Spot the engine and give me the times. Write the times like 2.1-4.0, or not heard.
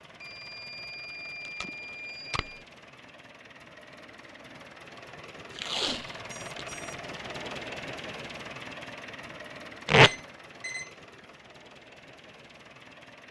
0.0-13.2.